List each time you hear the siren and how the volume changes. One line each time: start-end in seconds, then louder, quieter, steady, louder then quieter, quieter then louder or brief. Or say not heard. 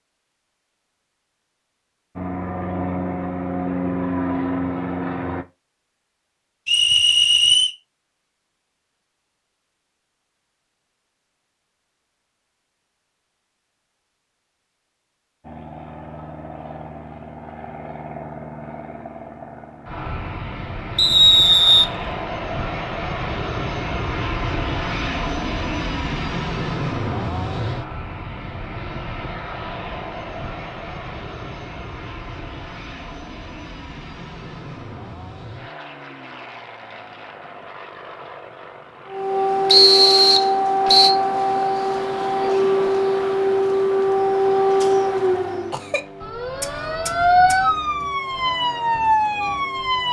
39.0-50.0 steady.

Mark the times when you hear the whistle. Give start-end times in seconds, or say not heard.
6.7-7.7, 20.9-21.9, 39.6-41.1.